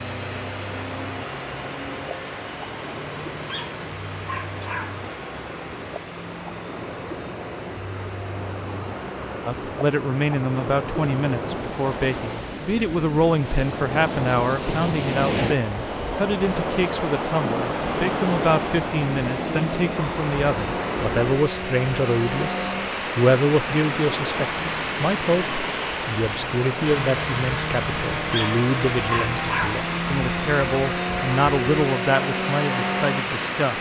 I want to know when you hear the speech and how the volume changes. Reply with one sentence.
You can hear the speech from 9.4 to 33.7 s, at a steady volume.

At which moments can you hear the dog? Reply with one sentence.
The dog can be heard from 3.5 to 5.0 s and from 28.3 to 29.8 s.